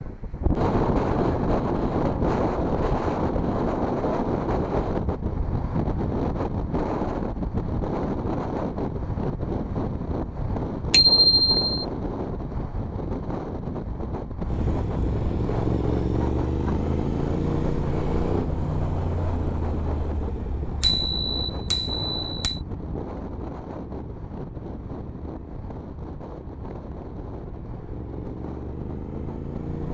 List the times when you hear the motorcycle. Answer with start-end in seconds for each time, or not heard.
14.4-29.8.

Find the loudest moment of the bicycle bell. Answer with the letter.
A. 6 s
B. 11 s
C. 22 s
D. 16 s
B.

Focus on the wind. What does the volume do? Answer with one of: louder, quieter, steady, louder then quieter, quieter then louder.
quieter.